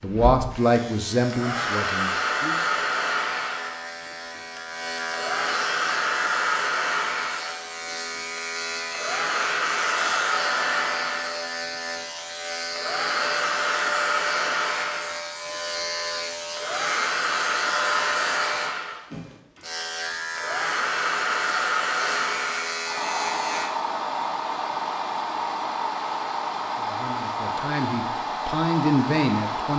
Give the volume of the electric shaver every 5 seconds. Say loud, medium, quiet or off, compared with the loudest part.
medium, loud, loud, loud, loud, off.